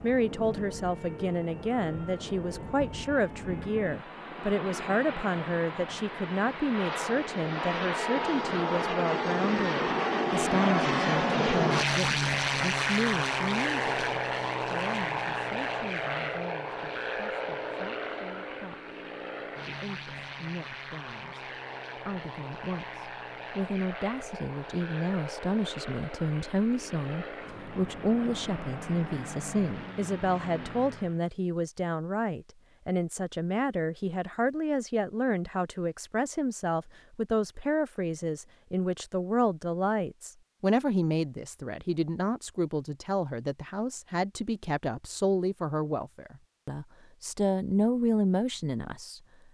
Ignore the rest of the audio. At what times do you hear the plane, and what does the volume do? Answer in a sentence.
You can hear the plane from 0.0 to 31.2 s, getting louder then quieter.